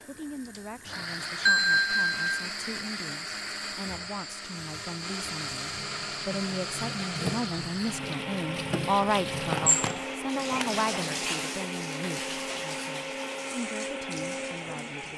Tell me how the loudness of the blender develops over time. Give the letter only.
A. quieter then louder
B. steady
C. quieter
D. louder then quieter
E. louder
B.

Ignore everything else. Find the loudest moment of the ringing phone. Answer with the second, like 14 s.
2 s.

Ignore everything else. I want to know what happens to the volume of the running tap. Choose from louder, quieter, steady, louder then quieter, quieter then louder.
louder then quieter.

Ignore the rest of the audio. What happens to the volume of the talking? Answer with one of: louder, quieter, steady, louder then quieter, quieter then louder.
louder then quieter.